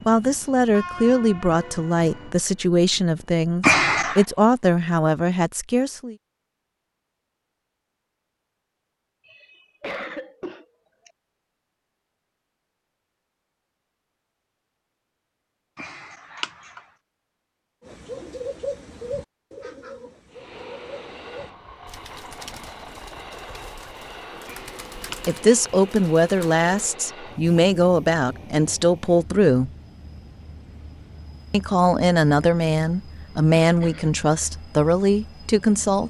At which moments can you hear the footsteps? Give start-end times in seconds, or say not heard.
not heard.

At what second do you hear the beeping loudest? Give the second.
4 s.